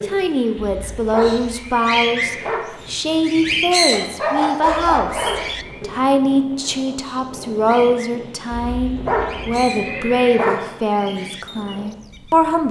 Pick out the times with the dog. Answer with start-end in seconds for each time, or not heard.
3.9-5.5.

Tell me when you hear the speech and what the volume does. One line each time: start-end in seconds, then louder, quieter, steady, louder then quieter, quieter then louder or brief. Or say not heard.
0.0-12.6 steady.